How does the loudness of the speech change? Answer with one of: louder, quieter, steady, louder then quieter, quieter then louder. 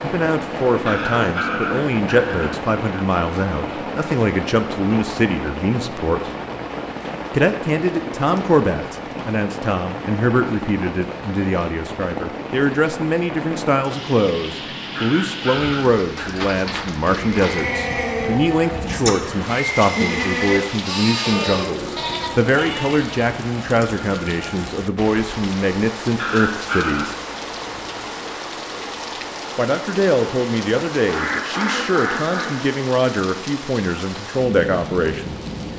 steady.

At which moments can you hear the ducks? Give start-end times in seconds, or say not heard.
31.1-32.5.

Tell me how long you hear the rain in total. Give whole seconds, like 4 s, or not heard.
36 s.